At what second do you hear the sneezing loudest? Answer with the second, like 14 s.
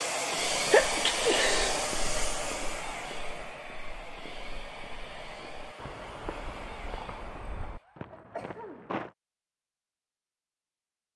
1 s.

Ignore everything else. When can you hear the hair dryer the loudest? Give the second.
1 s.